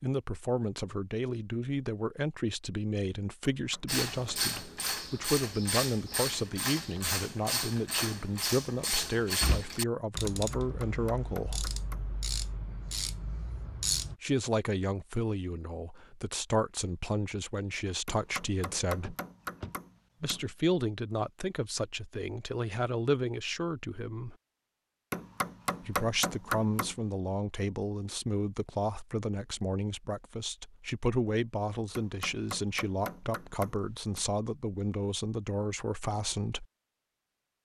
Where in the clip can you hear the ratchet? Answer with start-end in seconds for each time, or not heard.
3.9-14.2.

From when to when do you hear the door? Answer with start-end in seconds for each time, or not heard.
8.9-9.7, 19.0-19.8.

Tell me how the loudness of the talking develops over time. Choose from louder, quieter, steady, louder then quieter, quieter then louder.
steady.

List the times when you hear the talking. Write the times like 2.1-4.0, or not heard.
0.0-11.7, 14.2-19.1, 20.2-24.4, 25.9-36.6.